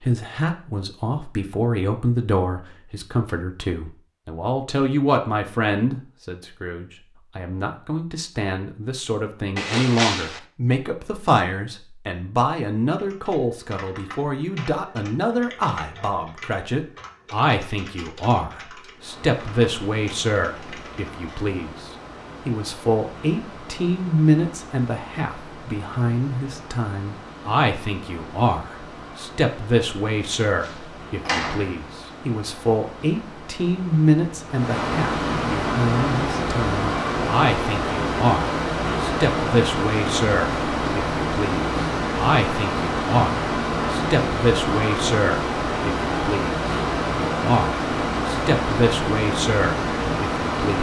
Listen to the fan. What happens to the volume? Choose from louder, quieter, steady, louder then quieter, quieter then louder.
louder.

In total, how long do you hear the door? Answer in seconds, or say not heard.
2 s.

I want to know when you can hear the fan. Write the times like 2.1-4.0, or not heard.
18.9-50.7.